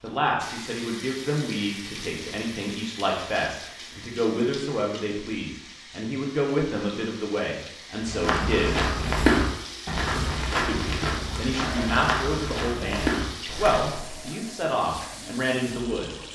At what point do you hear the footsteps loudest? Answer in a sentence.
The loudest moment of the footsteps is at 9 seconds.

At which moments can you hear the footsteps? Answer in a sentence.
The footsteps can be heard from 8.1 to 14.3 s.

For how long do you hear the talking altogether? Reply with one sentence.
You can hear the talking for 14 seconds altogether.